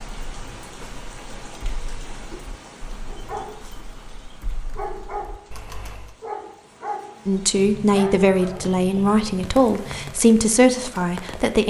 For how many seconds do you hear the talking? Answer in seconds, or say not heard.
4 s.